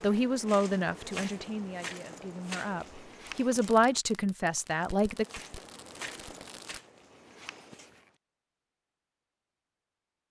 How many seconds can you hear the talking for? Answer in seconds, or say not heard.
5 s.